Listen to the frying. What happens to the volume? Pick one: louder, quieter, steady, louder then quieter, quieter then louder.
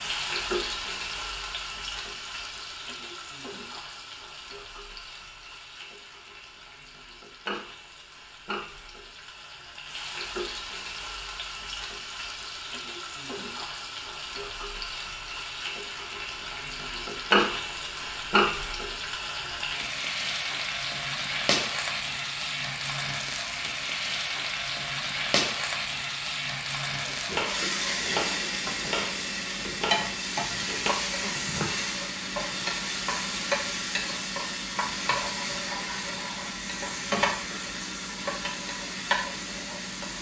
louder.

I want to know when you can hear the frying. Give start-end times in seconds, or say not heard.
0.0-40.1.